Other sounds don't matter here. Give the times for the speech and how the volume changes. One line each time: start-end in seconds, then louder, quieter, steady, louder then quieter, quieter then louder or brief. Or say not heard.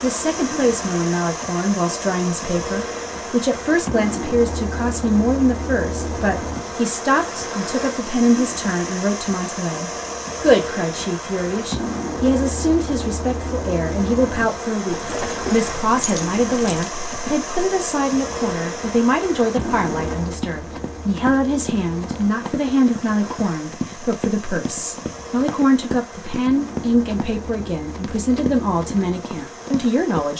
0.0-30.3 steady.